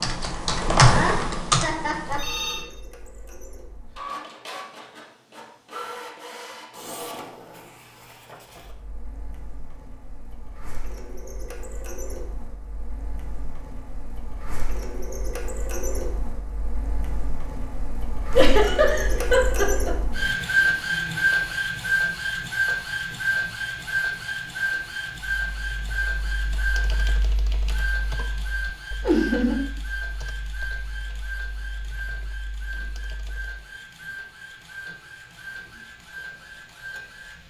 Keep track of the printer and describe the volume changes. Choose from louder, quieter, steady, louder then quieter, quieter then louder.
louder then quieter.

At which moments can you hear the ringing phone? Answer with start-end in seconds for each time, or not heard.
2.1-2.8.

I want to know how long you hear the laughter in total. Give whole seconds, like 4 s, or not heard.
4 s.